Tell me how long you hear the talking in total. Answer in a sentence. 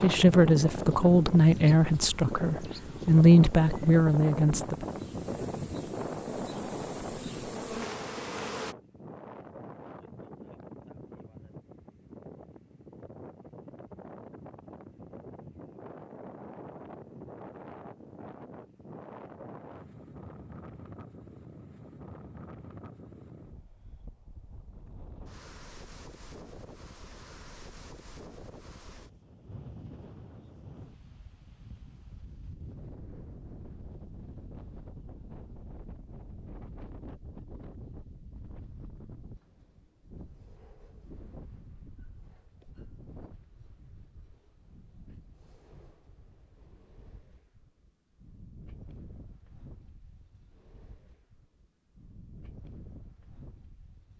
The talking can be heard for 5 seconds in total.